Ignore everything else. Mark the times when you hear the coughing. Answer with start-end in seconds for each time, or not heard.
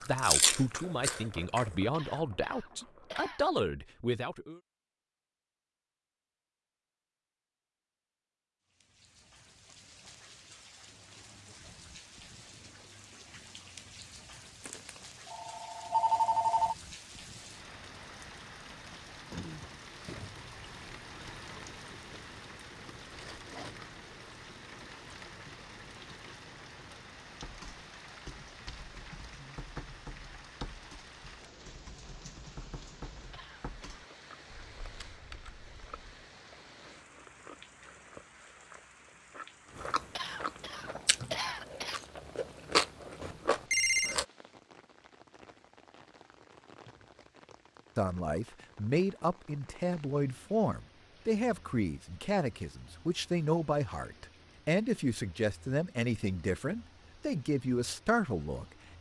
1.9-3.5, 33.3-34.1, 40.1-42.0.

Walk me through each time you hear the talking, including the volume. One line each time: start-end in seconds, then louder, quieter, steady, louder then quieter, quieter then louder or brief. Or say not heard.
0.1-4.6 steady
48.0-58.9 steady.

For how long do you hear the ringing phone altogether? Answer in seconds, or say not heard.
3 s.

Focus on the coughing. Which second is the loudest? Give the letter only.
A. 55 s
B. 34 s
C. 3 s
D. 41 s
D.